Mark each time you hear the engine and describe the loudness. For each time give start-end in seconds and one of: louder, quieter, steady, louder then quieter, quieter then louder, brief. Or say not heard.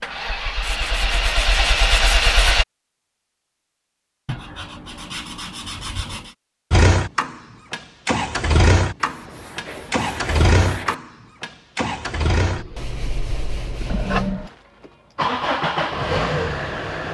0.0-2.6 brief
6.7-17.0 quieter then louder.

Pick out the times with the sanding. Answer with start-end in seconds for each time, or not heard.
0.6-2.4, 4.2-6.3, 9.0-10.9, 12.8-14.4.